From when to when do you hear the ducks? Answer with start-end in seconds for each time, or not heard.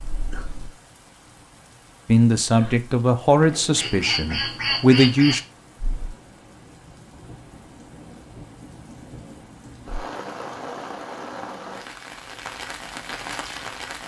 3.4-5.5.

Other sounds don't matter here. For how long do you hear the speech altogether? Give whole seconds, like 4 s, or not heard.
3 s.